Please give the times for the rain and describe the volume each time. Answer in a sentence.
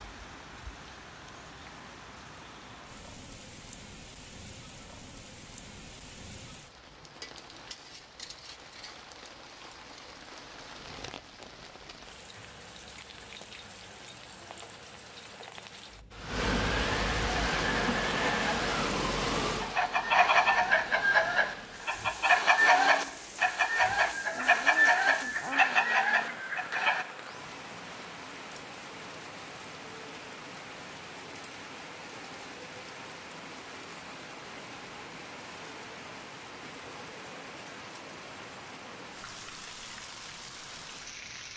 The rain can be heard from 0.0 to 41.5 s, getting louder then quieter.